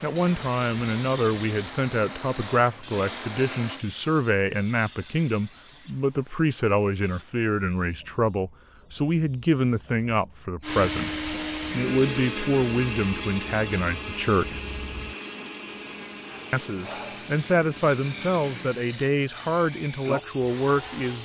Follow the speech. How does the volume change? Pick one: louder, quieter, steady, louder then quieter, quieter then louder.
steady.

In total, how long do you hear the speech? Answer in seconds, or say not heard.
19 s.